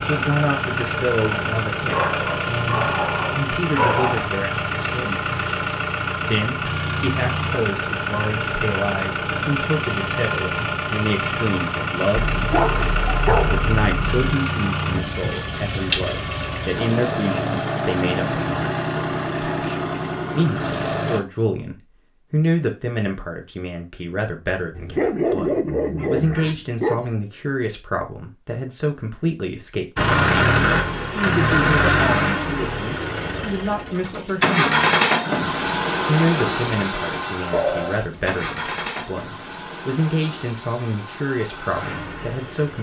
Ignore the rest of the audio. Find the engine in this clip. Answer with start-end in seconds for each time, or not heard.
0.0-21.2, 29.9-42.7.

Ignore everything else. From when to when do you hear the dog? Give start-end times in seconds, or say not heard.
1.3-4.3, 12.2-14.2, 24.7-27.1, 37.5-38.4.